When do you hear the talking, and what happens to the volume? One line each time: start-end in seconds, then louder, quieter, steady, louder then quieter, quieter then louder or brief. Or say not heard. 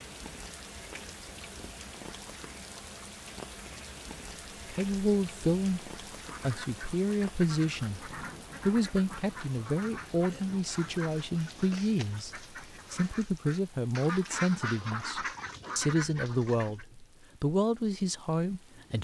4.7-19.0 steady.